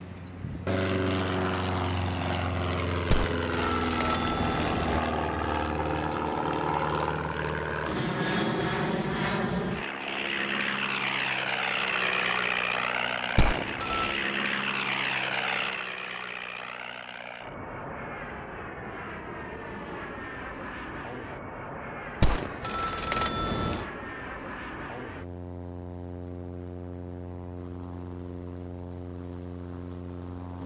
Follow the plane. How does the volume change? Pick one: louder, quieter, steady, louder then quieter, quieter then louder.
quieter.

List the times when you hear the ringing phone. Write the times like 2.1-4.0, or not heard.
3.1-5.0, 13.3-14.2, 22.2-23.9.